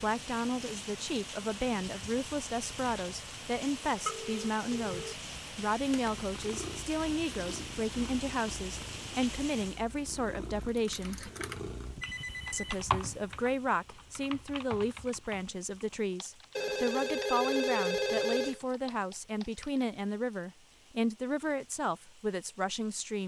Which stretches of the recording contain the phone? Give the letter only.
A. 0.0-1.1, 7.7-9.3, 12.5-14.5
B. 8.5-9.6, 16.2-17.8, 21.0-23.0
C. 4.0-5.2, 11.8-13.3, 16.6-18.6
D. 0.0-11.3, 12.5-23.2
C.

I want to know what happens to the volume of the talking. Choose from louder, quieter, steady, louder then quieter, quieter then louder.
steady.